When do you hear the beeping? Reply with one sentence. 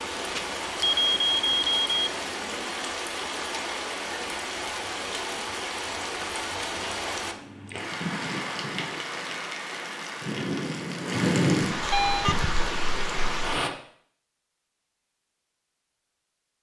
You can hear the beeping from 0.3 to 2.1 s and from 11.8 to 12.5 s.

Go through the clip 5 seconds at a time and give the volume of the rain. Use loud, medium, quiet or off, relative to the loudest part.
medium, medium, loud, off.